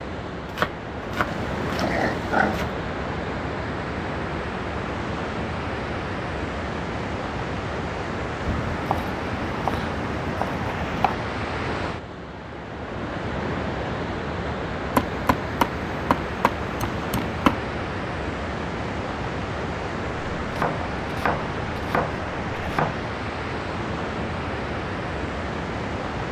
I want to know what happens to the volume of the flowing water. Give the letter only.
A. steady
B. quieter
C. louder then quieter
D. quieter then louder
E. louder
A.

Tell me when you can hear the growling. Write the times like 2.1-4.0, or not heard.
1.2-2.6.